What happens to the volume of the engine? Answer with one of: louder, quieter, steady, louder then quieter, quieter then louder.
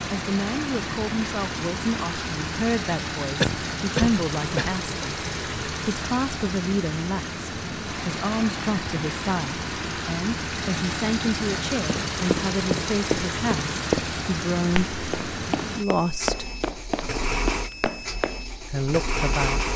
steady.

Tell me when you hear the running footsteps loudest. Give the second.
14 s.